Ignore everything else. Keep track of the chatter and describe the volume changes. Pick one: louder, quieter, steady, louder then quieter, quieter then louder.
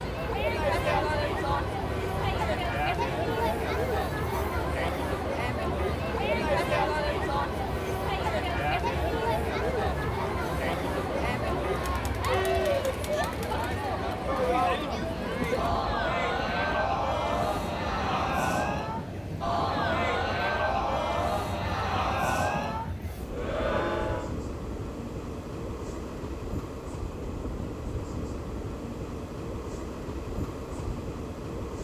steady.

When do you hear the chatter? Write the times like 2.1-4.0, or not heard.
0.0-24.4.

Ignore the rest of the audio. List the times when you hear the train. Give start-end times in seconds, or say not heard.
0.0-31.8.